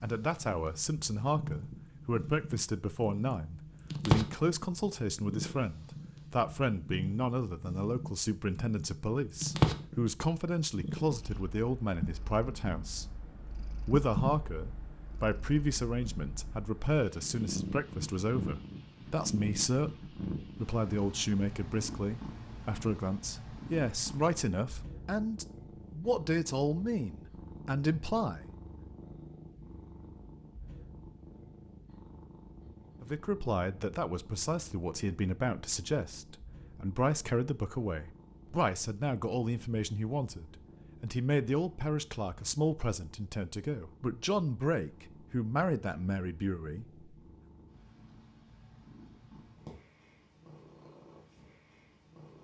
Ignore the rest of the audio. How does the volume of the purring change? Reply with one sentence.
The loudness of the purring goes down.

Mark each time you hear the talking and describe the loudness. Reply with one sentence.
The talking can be heard from 0.0 to 13.1 s, at a steady volume; from 13.8 to 28.5 s, at a steady volume; and from 33.0 to 47.0 s, at a steady volume.